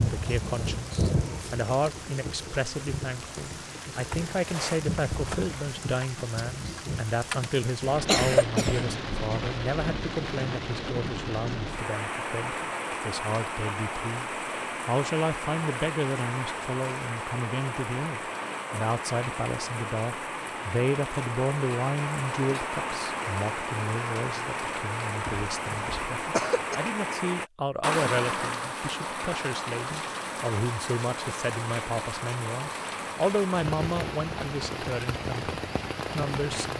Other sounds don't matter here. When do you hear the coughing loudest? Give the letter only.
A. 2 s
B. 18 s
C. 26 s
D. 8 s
D.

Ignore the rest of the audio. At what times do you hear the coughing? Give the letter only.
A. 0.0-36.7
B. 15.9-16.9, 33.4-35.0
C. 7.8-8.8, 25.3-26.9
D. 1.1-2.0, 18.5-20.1
C.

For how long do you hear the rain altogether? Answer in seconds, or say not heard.
37 s.